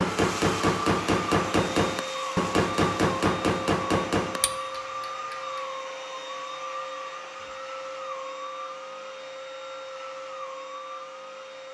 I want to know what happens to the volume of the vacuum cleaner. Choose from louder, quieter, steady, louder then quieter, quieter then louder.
quieter.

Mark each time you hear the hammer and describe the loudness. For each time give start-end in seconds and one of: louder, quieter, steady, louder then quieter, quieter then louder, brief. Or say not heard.
0.0-5.7 quieter.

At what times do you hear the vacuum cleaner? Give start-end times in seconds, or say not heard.
0.0-11.6.